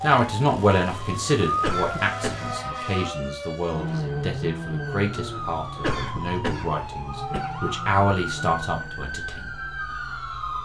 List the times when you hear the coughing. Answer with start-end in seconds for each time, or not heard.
1.6-2.6, 5.8-7.5.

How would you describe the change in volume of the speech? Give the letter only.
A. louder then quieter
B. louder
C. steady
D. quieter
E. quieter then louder
E.